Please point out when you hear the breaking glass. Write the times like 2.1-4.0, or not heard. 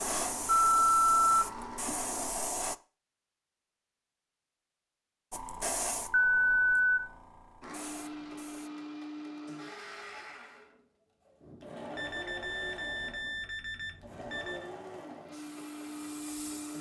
not heard.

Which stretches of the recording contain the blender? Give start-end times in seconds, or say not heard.
0.0-2.3, 7.6-16.7.